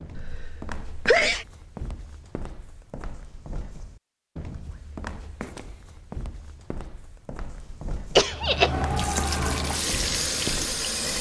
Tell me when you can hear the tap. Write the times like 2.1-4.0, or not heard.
8.2-11.1.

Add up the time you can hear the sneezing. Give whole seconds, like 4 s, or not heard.
2 s.